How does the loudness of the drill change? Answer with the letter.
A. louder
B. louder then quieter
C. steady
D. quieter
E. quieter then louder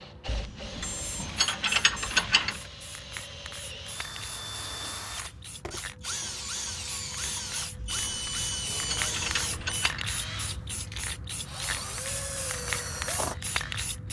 A.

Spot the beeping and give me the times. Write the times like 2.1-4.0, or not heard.
0.8-2.1, 7.8-9.9.